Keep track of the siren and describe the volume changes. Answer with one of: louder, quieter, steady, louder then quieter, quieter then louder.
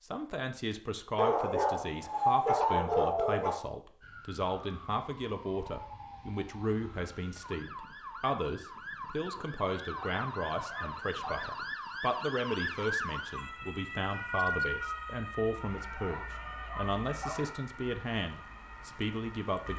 louder then quieter.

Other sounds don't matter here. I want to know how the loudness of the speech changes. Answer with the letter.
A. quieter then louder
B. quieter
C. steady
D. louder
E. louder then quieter
C.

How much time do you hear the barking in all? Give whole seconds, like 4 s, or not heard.
6 s.